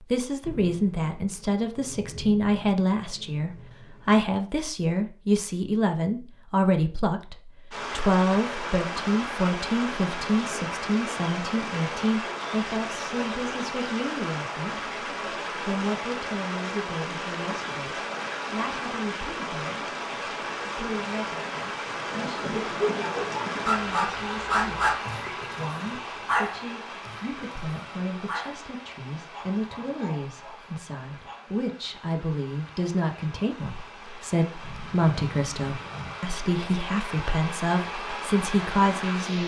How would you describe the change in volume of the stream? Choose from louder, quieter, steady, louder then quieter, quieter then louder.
quieter then louder.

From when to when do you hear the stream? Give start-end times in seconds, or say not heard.
7.7-39.4.